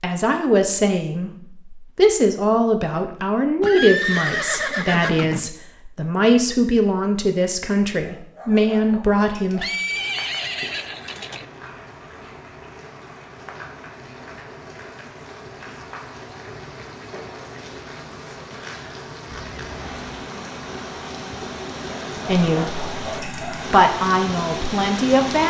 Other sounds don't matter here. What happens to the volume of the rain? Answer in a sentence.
The loudness of the rain goes up.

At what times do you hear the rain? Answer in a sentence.
The rain can be heard from 9.8 to 25.4 s.